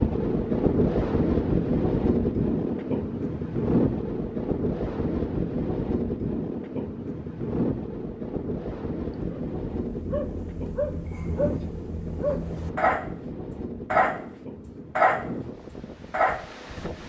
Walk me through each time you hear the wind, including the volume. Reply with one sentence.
You can hear the wind from 0.0 to 17.0 s, getting quieter.